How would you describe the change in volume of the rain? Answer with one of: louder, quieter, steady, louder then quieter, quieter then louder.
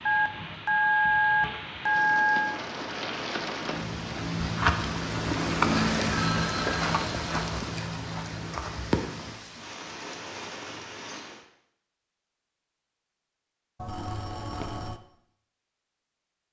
louder then quieter.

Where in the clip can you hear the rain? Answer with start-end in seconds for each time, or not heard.
0.0-11.4.